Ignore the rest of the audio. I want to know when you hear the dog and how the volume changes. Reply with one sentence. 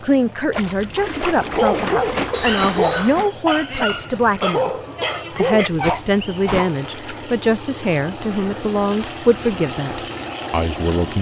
The dog can be heard from 1.4 to 7.0 s, at a steady volume.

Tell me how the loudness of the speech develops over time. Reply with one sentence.
The volume of the speech stays about the same.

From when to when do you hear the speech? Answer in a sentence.
You can hear the speech from 0.0 to 4.7 s and from 5.3 to 11.1 s.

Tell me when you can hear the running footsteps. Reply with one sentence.
You can't hear the running footsteps here.